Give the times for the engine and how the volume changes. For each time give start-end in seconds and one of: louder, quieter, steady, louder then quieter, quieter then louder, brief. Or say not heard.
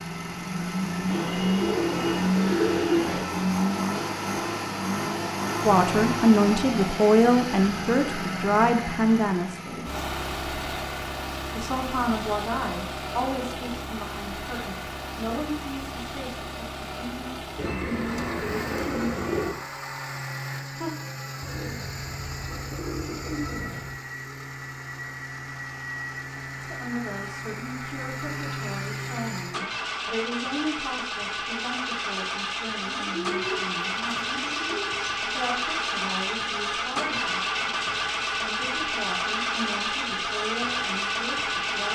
0.0-41.9 quieter then louder.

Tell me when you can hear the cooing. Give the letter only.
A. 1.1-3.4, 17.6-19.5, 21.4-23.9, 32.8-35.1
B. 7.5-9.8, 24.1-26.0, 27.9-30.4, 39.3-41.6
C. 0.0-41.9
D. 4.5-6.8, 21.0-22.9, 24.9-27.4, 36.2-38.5
A.